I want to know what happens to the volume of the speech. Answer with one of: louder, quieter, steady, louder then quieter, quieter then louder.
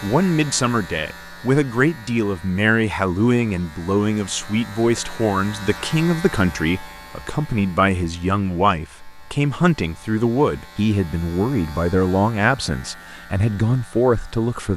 steady.